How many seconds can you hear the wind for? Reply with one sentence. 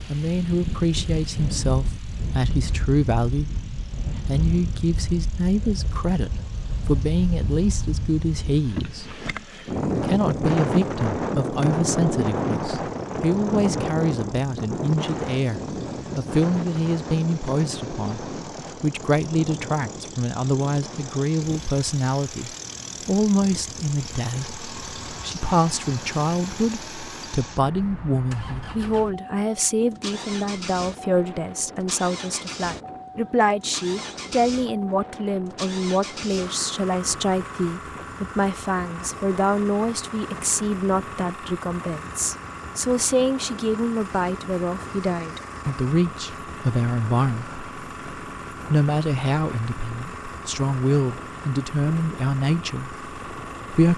You can hear the wind for 54 seconds altogether.